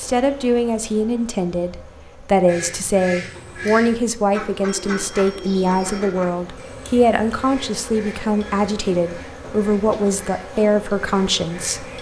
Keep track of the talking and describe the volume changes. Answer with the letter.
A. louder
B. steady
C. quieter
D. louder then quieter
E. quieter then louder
B.